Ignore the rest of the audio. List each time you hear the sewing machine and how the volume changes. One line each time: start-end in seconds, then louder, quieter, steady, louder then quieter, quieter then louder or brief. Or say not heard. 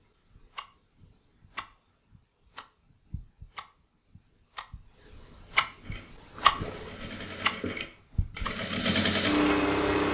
5.8-10.0 louder.